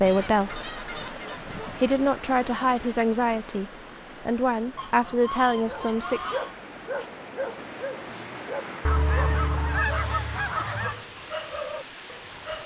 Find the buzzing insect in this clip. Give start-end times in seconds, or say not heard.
not heard.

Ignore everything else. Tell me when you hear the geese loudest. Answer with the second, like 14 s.
10 s.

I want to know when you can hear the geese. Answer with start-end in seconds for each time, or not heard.
0.1-1.9, 4.8-6.5, 8.8-11.0.